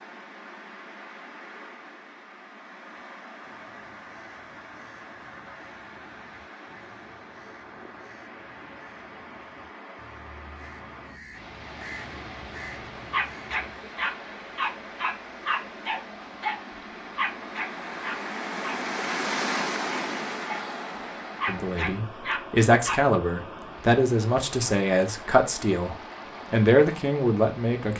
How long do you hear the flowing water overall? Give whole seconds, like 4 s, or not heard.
28 s.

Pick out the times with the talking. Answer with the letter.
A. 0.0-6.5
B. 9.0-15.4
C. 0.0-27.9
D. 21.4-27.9
D.